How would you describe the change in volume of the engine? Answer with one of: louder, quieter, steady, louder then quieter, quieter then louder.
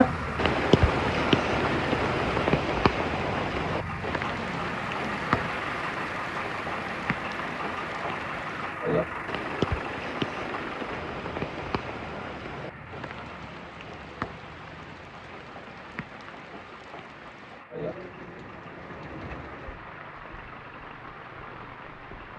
quieter.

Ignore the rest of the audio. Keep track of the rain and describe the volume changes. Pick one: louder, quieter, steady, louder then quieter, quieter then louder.
quieter.